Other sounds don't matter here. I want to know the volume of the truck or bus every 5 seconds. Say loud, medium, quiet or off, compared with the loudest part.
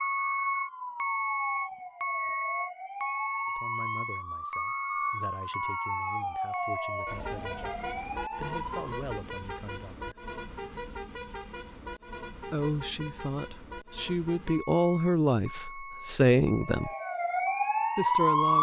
loud, medium, medium, quiet.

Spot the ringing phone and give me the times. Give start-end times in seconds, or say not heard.
not heard.